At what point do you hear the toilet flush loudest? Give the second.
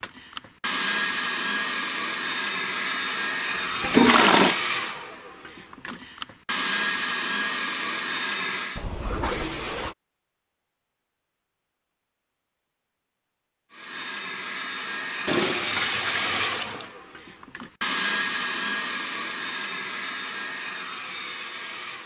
4 s.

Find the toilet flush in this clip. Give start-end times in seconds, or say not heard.
3.8-4.5, 8.8-9.9, 15.2-16.9.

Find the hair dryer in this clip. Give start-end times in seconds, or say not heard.
0.0-8.8, 13.7-22.0.